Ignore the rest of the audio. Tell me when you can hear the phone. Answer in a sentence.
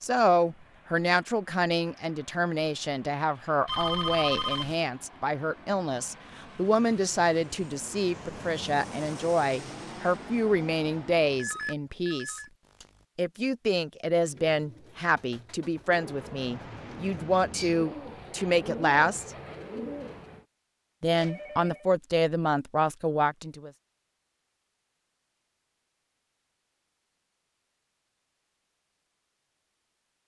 You can hear the phone from 3.6 to 4.8 s, from 11.3 to 13.1 s and from 21.1 to 21.9 s.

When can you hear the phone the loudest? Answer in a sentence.
The volume of the phone peaks at 4 seconds.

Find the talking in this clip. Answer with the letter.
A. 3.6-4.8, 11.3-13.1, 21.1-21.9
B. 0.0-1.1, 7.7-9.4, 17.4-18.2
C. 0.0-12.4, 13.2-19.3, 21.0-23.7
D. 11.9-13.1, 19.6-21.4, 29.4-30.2
C.